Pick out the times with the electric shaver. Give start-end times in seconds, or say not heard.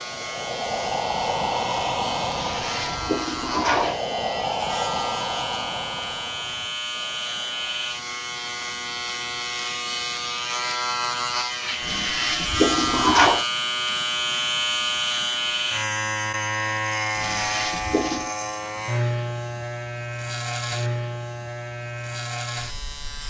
0.0-23.2.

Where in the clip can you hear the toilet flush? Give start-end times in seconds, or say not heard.
2.3-4.0, 11.8-13.4, 17.1-18.3.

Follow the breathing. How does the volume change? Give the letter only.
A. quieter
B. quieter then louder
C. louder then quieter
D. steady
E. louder
A.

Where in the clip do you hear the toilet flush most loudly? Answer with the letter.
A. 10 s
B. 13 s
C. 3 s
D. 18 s
B.